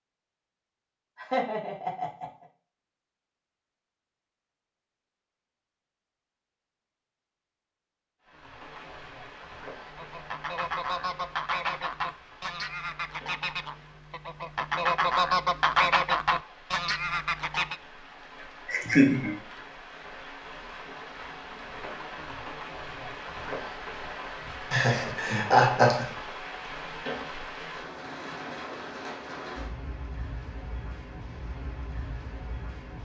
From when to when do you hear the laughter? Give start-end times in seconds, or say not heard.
1.1-2.5, 18.6-19.4, 24.7-26.1.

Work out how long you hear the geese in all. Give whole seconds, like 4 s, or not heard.
8 s.